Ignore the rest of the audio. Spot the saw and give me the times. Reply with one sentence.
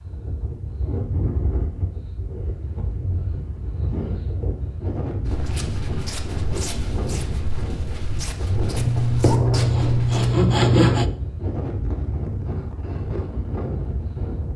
You can hear the saw from 8.8 to 11.1 s.